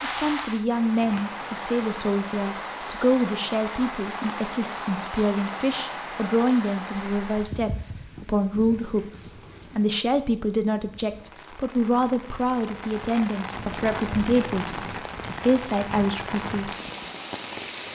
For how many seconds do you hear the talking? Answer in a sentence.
You can hear the talking for 17 seconds altogether.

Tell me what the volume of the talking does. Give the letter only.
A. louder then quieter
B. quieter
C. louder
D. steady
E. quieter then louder
D.